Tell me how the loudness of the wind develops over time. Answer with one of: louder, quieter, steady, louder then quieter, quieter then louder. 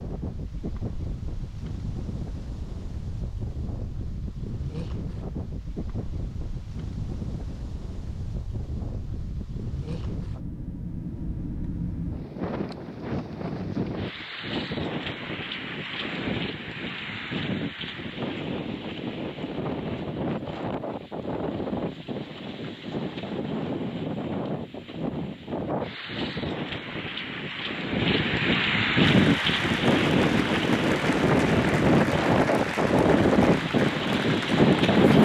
louder.